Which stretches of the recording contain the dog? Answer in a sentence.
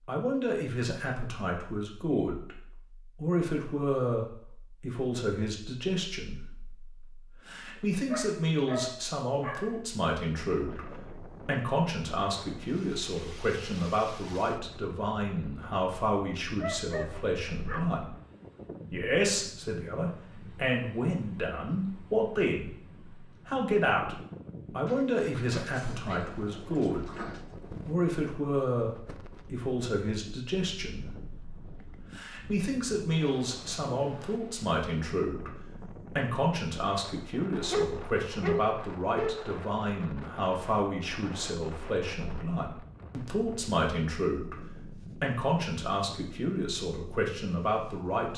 The dog can be heard from 7.8 to 9.8 s, from 16.6 to 18.0 s, from 24.9 to 27.5 s and from 37.7 to 39.4 s.